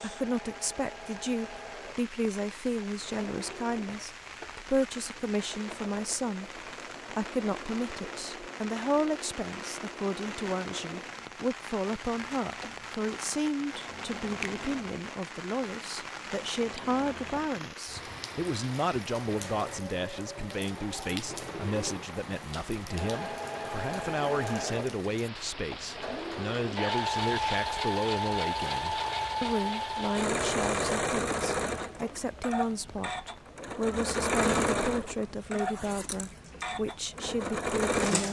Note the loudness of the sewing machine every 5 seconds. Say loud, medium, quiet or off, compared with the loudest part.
quiet, quiet, quiet, quiet, medium, loud, loud, loud.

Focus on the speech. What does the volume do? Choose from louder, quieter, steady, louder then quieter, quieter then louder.
steady.